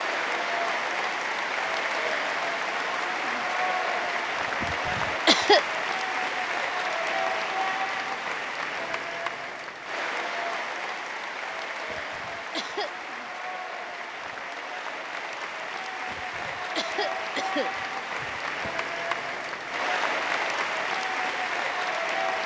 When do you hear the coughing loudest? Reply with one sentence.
The loudest moment of the coughing is at 5 seconds.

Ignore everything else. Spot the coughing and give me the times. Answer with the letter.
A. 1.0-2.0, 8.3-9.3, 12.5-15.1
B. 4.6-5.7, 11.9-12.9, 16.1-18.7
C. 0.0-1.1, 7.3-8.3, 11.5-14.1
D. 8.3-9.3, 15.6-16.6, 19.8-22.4
B.